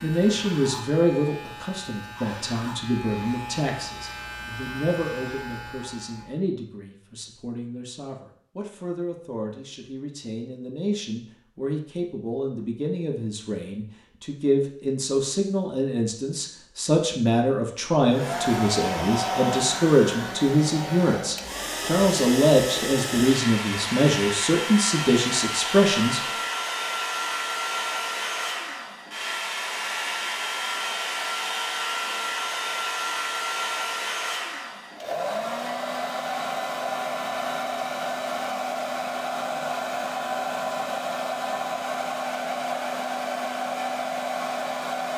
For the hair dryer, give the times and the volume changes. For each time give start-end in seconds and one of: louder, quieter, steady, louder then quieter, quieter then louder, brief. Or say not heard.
18.1-45.1 steady.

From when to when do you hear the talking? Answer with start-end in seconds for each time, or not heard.
0.0-26.2.